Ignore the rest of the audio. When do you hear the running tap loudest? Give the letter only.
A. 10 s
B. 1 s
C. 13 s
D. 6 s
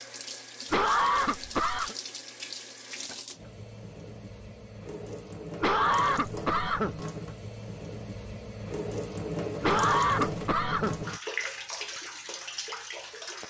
A.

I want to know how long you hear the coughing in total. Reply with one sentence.
The coughing can be heard for 4 seconds in total.